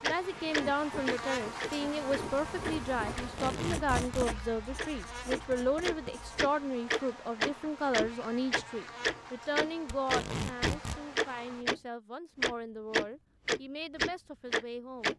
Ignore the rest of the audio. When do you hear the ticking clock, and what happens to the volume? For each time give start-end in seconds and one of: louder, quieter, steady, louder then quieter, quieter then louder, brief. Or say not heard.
0.0-11.8 quieter then louder
12.4-15.1 brief.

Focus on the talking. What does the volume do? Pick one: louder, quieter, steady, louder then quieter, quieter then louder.
quieter.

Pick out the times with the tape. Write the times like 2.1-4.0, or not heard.
3.1-4.3, 9.9-11.0.